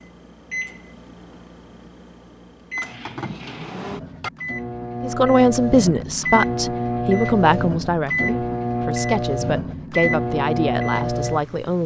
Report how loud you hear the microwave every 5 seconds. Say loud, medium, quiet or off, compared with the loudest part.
medium, loud, loud.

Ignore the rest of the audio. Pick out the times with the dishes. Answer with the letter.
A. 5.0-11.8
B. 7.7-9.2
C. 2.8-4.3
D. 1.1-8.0
C.